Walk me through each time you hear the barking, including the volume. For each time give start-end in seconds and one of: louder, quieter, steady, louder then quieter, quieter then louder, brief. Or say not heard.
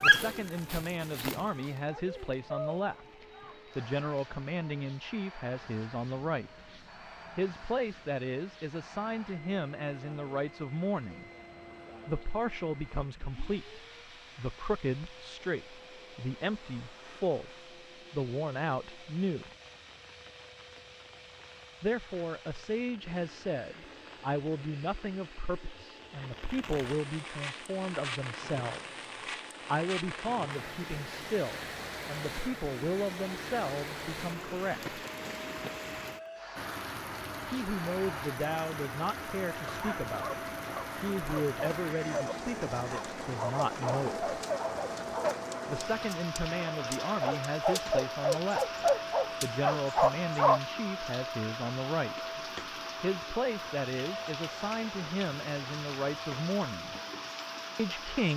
0.0-2.9 brief
39.8-50.6 louder.